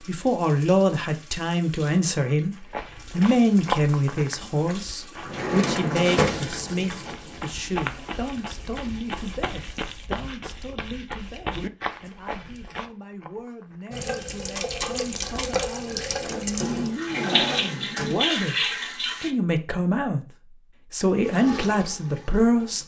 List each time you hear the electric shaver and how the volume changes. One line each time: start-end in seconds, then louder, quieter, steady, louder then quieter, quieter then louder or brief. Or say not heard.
not heard.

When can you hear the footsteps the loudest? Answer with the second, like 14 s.
4 s.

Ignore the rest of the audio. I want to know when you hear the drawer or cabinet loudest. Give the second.
6 s.